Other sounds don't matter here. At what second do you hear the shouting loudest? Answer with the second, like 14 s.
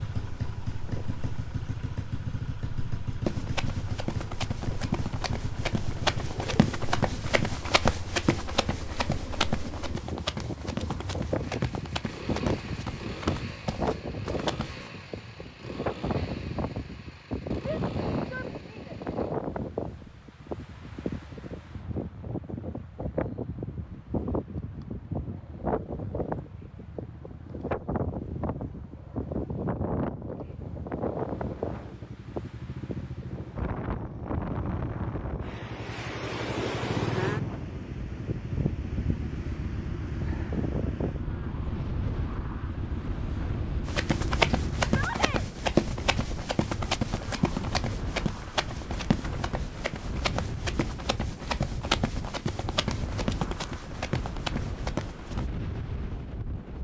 45 s.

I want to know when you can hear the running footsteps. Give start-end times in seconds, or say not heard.
3.2-14.8, 43.9-55.5.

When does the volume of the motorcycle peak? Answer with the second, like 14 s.
37 s.